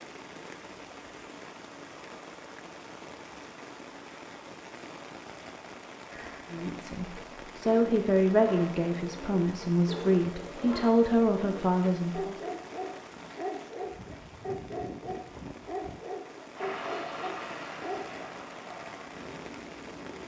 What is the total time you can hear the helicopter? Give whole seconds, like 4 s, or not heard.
4 s.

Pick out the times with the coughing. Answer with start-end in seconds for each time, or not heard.
6.1-6.5.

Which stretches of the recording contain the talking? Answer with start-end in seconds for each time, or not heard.
6.5-12.3.